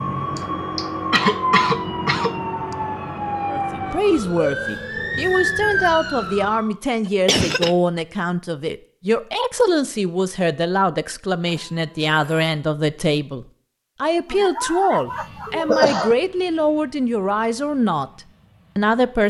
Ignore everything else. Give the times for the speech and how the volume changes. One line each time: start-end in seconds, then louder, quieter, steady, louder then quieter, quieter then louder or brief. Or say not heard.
3.5-18.1 steady
18.8-19.2 brief.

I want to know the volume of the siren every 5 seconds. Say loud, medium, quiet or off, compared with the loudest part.
loud, loud, off, off.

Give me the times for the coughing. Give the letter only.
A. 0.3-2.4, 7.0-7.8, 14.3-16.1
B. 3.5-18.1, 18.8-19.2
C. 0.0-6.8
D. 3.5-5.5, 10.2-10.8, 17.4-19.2
A.